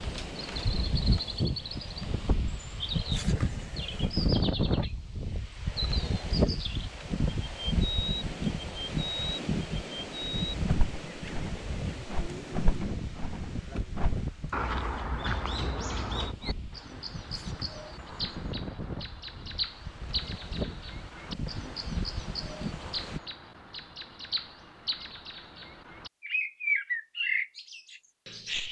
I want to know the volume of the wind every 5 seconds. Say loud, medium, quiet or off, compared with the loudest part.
loud, loud, medium, medium, medium, off.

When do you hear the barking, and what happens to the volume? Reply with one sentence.
The barking can't be heard in this clip.